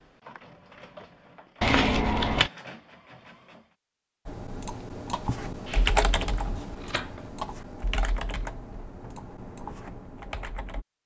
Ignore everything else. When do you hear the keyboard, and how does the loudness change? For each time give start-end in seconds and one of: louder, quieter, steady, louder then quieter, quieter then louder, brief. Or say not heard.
4.2-10.8 louder then quieter.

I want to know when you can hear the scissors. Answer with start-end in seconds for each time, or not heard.
1.6-2.5, 5.7-7.3.